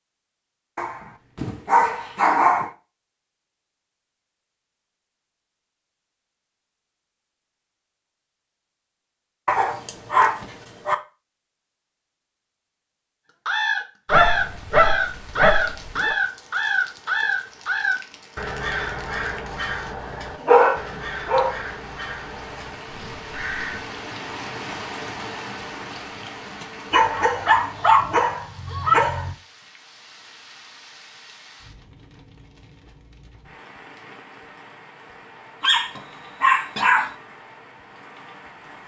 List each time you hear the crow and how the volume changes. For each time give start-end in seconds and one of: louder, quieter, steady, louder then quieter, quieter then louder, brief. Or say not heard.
13.4-23.9 quieter.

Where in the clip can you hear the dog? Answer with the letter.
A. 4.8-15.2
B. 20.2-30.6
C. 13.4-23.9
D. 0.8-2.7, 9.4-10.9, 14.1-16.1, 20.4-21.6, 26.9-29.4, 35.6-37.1
D.